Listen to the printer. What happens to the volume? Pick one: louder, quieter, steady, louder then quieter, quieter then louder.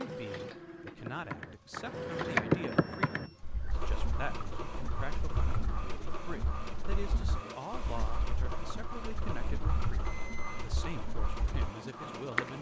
steady.